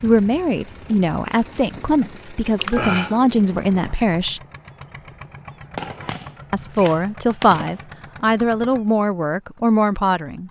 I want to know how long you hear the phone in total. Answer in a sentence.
You can hear the phone for 3 seconds altogether.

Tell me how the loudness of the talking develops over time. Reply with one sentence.
The volume of the talking stays about the same.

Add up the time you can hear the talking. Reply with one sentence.
You can hear the talking for 8 seconds altogether.